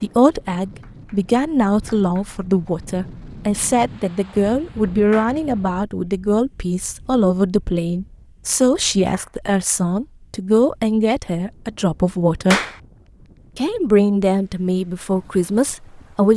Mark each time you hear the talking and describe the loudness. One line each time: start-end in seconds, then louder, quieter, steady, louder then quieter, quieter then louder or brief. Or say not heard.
0.0-12.6 steady
13.6-16.3 brief.